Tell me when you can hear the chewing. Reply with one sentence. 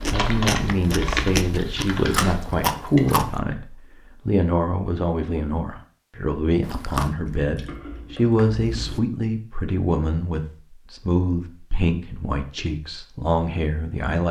You can hear the chewing from 0.0 to 3.4 s and from 6.6 to 9.0 s.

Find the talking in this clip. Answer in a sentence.
The talking can be heard from 0.1 to 14.2 s.